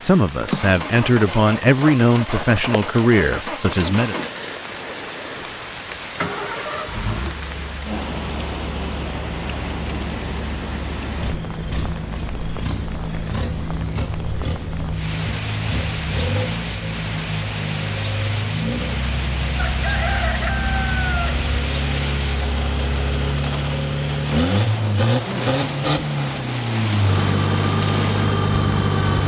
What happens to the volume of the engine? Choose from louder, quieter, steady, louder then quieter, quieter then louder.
louder.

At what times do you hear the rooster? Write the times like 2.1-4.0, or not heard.
19.6-21.5.